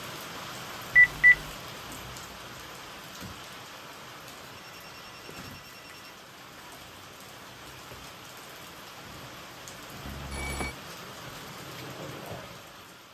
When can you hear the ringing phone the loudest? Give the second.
1 s.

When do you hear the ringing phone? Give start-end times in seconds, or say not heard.
0.9-1.4, 4.5-6.2, 10.1-10.8.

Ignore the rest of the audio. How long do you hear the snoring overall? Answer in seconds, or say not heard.
not heard.